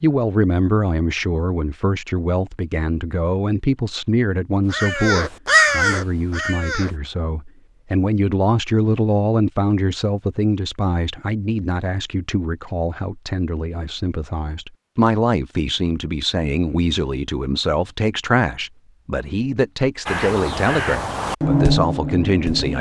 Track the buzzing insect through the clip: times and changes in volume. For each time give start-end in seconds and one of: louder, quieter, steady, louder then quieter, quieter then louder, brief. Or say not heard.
not heard.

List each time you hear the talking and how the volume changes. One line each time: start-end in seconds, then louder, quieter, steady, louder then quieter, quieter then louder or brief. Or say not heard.
0.0-22.7 steady.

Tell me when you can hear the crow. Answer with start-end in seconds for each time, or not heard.
4.7-7.0, 20.1-22.7.